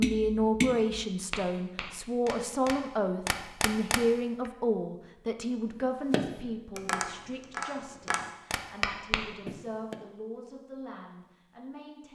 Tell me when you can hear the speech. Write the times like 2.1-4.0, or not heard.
0.0-12.0.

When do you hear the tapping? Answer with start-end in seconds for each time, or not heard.
0.0-4.5, 6.1-10.0.